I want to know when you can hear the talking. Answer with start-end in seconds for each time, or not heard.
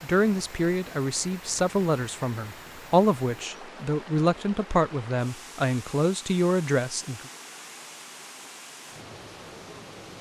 0.0-7.2.